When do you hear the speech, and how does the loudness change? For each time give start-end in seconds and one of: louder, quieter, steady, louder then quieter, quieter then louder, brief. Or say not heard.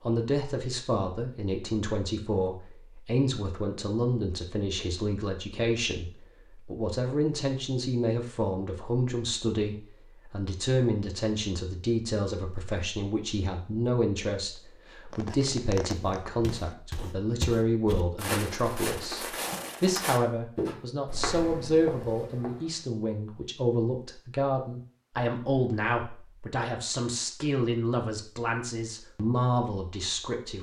0.0-30.5 steady.